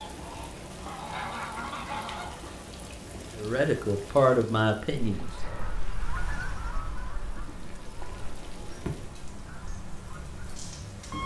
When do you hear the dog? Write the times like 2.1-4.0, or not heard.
not heard.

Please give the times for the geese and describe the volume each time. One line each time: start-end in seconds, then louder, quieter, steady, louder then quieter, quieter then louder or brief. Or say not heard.
0.0-2.6 brief
4.9-11.2 quieter.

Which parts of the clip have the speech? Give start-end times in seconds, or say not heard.
3.4-5.3.